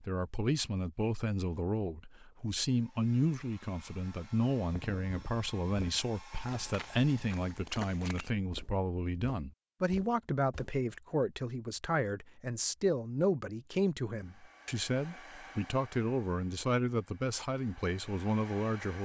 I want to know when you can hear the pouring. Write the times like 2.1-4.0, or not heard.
not heard.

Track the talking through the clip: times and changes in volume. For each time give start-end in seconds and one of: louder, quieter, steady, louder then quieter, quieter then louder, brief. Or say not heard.
0.0-19.0 steady.